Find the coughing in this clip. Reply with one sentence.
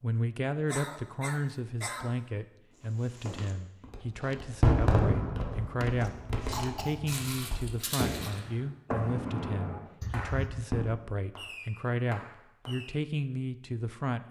You can hear the coughing from 0.7 to 2.1 s, from 5.8 to 7.0 s and from 10.0 to 10.7 s.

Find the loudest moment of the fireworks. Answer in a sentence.
The volume of the fireworks peaks at 5 seconds.